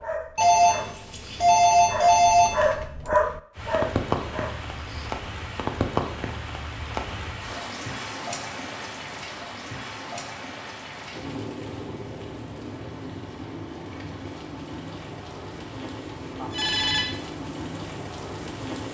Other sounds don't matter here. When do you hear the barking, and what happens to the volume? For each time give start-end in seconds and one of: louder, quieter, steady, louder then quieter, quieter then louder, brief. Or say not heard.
0.0-5.2 louder then quieter.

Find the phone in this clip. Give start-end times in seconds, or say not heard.
0.3-2.8, 16.5-17.1.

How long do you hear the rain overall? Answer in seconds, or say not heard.
15 s.